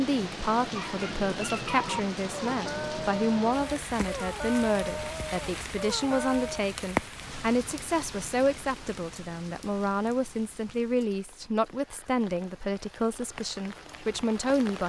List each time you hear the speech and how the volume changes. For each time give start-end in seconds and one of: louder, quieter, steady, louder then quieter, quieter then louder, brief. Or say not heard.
0.0-14.8 steady.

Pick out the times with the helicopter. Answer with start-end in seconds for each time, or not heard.
not heard.